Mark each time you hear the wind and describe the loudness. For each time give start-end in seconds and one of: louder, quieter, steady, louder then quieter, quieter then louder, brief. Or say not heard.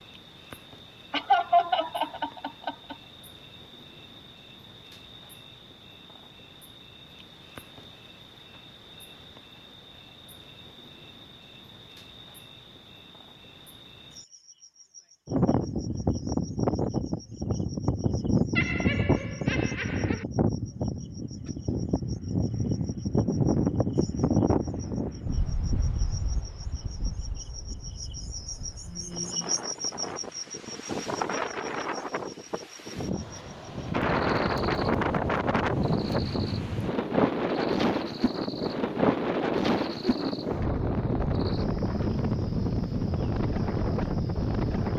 15.2-44.9 quieter then louder.